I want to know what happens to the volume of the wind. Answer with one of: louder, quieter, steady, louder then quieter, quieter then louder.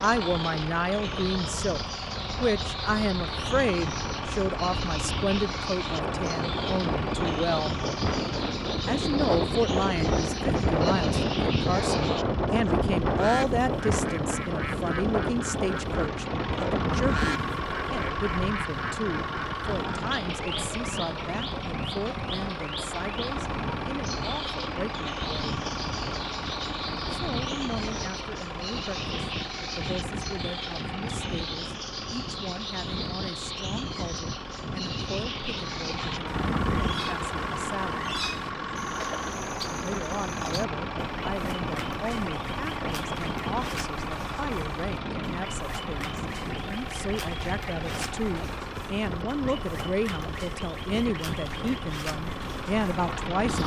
quieter.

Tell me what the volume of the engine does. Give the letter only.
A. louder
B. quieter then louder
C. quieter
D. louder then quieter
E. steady
E.